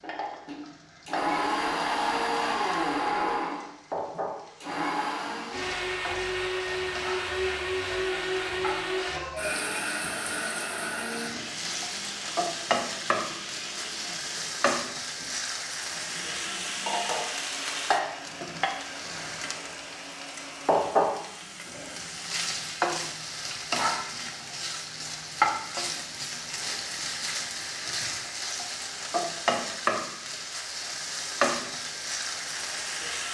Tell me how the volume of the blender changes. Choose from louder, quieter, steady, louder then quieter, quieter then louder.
quieter.